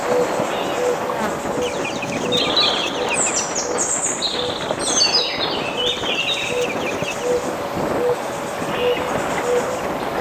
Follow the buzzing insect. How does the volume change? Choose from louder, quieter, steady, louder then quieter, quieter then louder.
steady.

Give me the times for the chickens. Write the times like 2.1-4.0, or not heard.
1.6-3.5, 5.8-7.3.